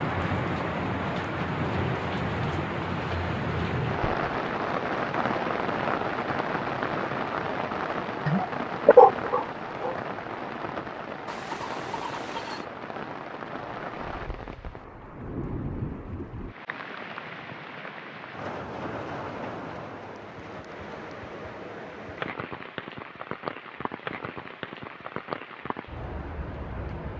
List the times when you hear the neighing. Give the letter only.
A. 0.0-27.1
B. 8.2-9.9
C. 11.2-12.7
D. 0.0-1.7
C.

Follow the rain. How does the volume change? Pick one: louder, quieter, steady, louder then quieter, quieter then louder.
quieter.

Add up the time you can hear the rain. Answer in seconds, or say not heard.
27 s.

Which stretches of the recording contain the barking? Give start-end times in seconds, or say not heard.
8.2-9.9.